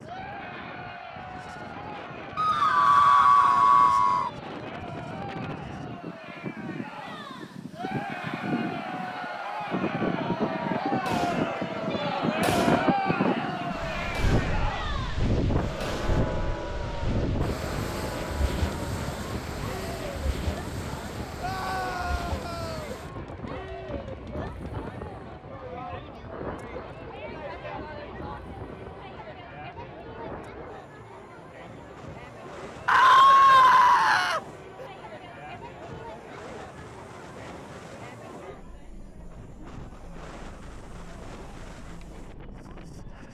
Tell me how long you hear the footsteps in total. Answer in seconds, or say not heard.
not heard.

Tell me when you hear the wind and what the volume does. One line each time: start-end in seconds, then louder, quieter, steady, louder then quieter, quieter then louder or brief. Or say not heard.
0.0-43.2 louder then quieter.